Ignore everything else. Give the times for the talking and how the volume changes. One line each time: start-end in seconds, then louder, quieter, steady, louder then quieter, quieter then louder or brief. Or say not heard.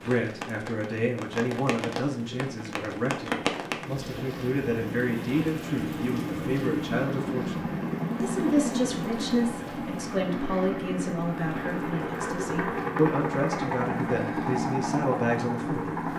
0.0-16.0 steady.